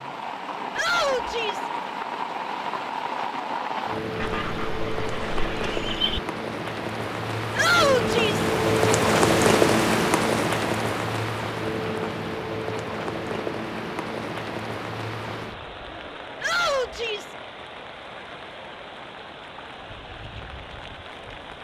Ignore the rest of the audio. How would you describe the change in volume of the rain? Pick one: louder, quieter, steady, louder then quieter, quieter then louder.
louder then quieter.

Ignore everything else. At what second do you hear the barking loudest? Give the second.
6 s.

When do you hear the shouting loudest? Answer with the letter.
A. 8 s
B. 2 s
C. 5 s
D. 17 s
A.